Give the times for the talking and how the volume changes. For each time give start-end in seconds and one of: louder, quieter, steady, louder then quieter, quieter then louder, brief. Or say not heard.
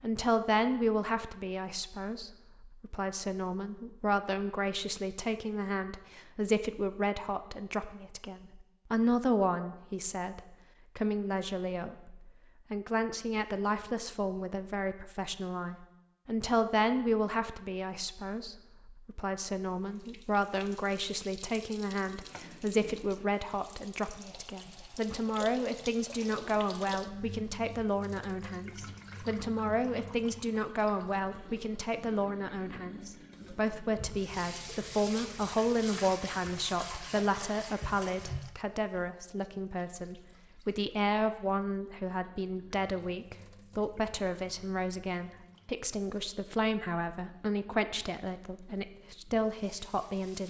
0.0-50.4 steady.